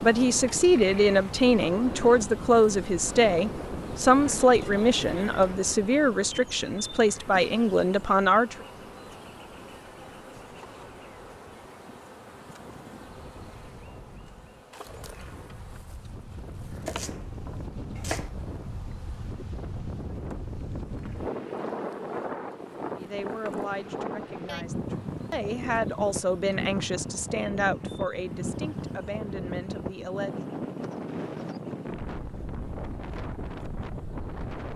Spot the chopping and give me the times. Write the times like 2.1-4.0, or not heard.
16.7-18.3.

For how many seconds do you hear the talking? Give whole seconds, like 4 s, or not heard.
16 s.